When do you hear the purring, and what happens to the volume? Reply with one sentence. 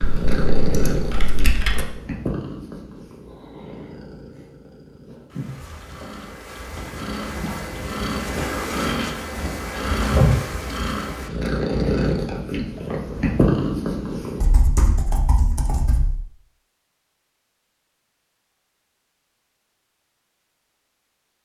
You can hear the purring from 0.0 to 14.4 s, getting quieter then louder.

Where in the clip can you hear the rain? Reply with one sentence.
You can't hear the rain here.